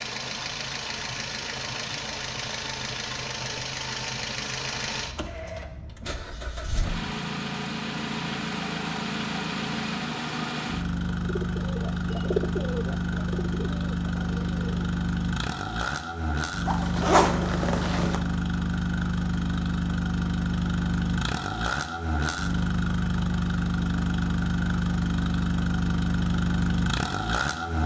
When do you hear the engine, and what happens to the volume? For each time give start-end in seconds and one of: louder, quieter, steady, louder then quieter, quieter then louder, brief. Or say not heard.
0.0-27.8 louder.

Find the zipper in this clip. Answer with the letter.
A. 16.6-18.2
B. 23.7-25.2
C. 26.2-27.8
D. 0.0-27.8
A.